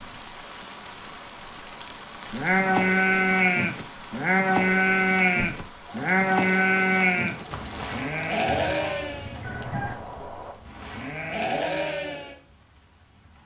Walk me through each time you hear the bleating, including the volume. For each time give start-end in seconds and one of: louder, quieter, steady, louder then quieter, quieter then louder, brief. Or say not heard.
2.3-12.3 quieter.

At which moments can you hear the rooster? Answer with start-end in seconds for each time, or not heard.
8.4-9.9.